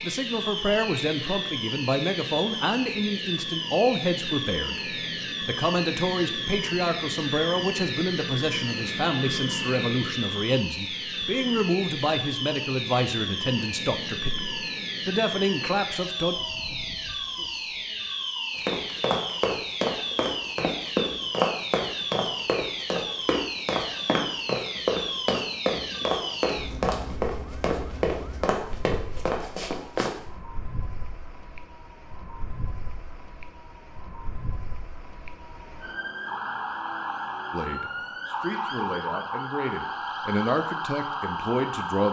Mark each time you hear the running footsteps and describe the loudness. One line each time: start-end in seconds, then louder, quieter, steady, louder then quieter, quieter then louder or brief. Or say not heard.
18.6-30.1 steady.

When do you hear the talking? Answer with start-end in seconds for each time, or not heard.
0.0-16.4, 37.5-42.0.